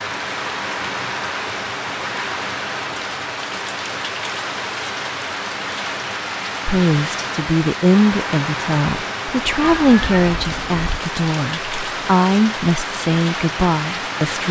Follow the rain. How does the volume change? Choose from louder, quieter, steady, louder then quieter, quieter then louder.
steady.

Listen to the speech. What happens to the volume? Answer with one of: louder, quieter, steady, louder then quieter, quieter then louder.
steady.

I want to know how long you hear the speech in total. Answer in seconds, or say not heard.
8 s.